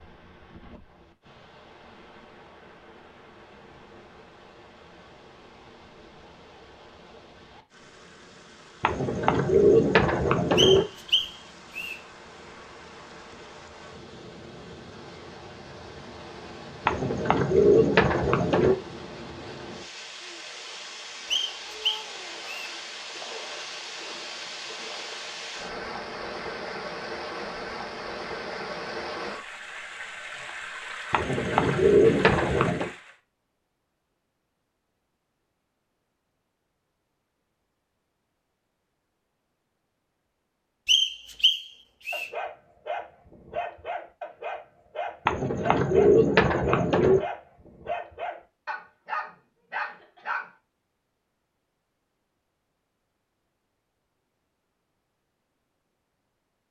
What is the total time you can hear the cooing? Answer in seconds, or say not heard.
8 s.